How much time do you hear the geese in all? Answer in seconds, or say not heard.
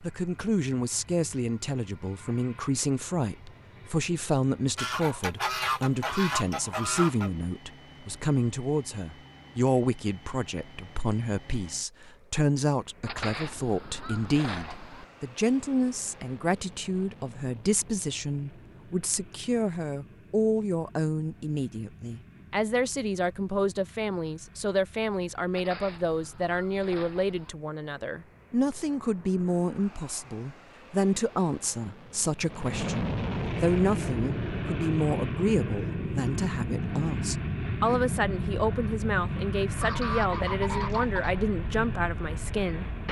8 s.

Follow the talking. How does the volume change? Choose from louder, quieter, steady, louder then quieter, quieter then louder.
steady.